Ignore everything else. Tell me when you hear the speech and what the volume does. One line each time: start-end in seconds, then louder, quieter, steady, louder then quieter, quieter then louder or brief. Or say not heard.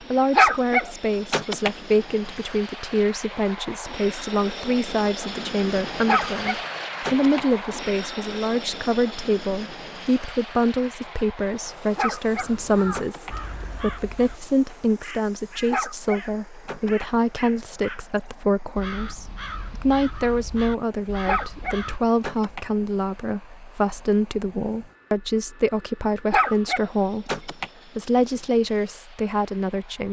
0.1-30.0 steady.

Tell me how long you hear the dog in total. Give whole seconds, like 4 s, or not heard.
8 s.